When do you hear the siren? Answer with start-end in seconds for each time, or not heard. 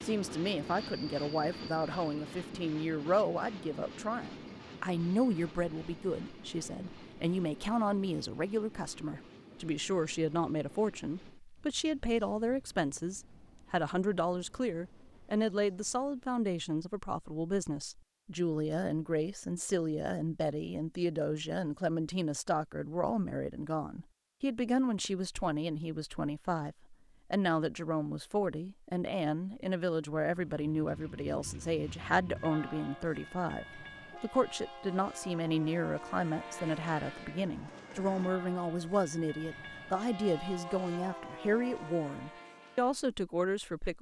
not heard.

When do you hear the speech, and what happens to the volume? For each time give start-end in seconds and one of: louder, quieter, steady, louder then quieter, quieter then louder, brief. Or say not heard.
0.0-43.9 steady.